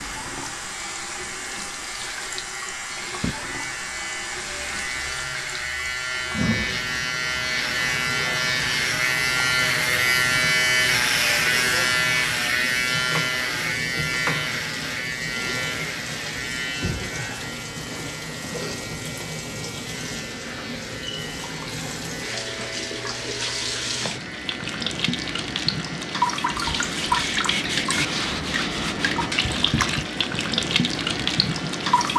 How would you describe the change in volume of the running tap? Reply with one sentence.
The volume of the running tap goes up.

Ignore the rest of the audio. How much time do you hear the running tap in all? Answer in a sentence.
You can hear the running tap for 32 seconds altogether.